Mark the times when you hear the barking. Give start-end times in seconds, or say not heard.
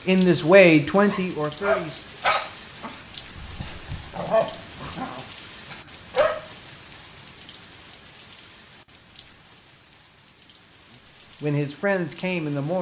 1.1-6.3.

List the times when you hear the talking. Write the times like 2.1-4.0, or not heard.
0.1-2.0, 11.4-12.7.